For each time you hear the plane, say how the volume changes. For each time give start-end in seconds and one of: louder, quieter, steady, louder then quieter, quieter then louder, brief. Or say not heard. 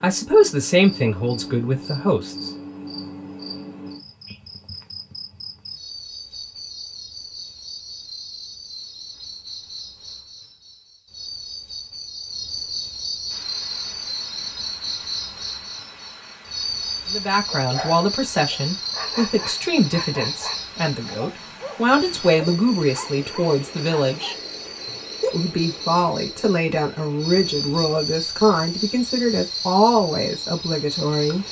not heard.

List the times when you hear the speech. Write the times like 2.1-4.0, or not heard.
0.0-2.4, 17.1-24.4, 25.2-31.4.